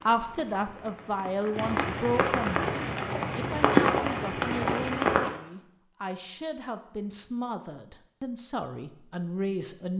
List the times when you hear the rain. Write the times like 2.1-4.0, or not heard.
0.0-5.4.